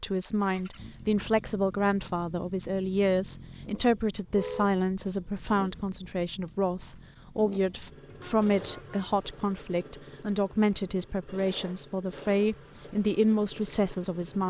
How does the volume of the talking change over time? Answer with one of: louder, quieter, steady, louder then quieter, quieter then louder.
steady.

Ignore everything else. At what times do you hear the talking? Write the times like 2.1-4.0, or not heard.
0.0-14.4.